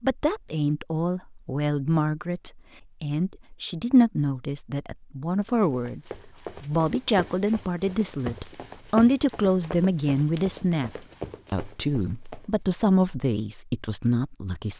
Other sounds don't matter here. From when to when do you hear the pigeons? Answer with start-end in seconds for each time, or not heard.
not heard.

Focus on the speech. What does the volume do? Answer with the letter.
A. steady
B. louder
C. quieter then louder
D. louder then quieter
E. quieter
A.